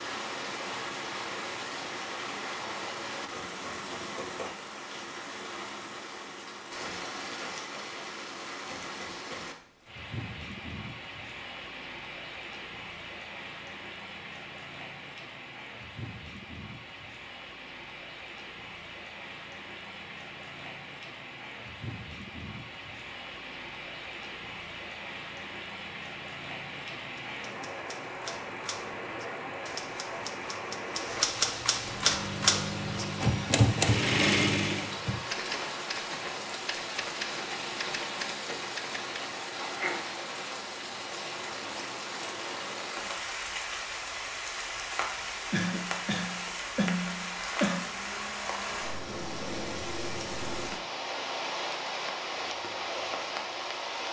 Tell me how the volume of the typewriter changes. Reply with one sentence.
The loudness of the typewriter goes up, then down.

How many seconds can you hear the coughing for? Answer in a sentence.
The coughing can be heard for 2 seconds in total.